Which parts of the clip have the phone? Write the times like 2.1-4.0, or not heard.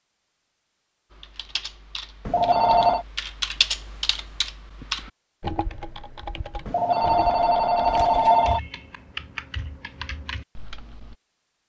2.2-3.0, 6.7-8.6.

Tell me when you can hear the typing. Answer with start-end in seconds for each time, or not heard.
1.1-11.2.